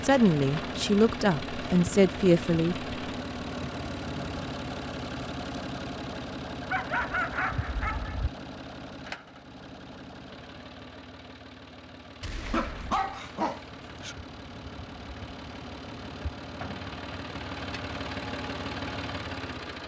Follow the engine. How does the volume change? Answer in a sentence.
The loudness of the engine goes down, then up.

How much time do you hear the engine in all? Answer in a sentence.
The engine can be heard for 20 seconds in total.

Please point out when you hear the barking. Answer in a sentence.
You can hear the barking from 6.7 to 8.3 s and from 12.5 to 14.2 s.